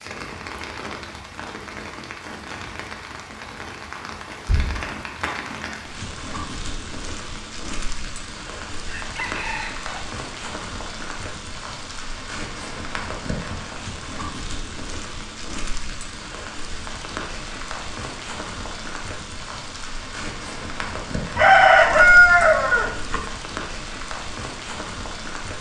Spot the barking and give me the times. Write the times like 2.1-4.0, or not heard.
not heard.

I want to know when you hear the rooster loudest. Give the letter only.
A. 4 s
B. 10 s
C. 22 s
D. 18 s
C.